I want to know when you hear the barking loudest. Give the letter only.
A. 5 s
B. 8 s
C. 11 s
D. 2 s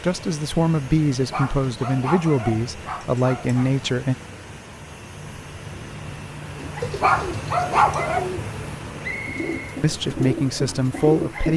B.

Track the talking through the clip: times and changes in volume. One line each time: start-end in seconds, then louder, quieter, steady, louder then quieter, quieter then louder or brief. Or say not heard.
0.0-4.2 quieter then louder
9.8-11.5 brief.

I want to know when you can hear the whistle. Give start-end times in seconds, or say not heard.
9.0-9.8.